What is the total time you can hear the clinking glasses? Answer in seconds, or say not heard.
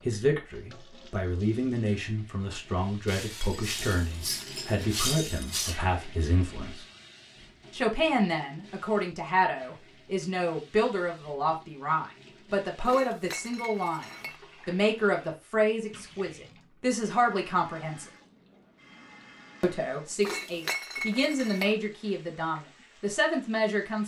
6 s.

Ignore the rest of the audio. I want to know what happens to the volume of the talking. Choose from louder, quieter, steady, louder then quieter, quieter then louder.
steady.